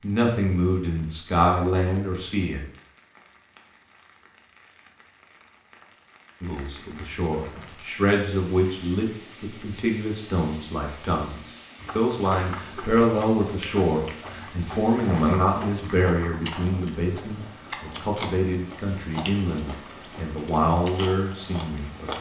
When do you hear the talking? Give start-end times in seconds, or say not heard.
0.0-2.6, 6.4-22.1.